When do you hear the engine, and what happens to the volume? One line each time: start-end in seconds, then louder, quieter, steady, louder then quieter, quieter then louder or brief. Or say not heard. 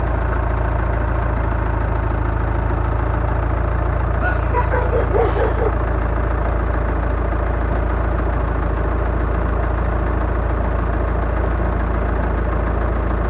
0.0-13.2 steady.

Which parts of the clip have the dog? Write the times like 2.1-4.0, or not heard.
4.2-5.8.